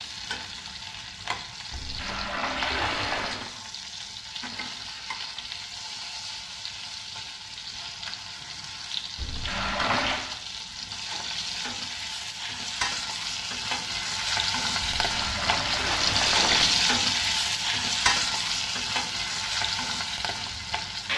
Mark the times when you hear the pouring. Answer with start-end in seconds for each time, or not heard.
1.7-3.4, 9.2-10.2, 14.8-16.6.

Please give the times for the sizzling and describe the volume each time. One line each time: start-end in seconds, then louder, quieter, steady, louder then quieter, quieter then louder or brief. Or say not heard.
0.0-21.1 louder.